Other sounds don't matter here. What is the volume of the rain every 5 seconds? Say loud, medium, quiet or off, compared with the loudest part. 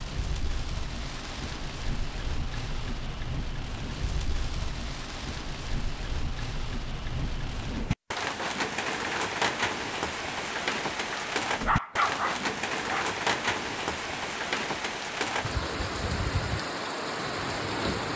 medium, loud, loud, loud.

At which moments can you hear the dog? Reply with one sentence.
You can hear the dog from 11.1 to 13.1 s.